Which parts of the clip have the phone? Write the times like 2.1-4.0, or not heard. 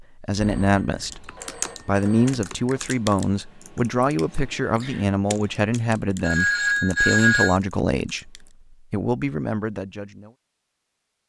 0.3-2.8, 6.2-7.6.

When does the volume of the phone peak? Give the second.
7 s.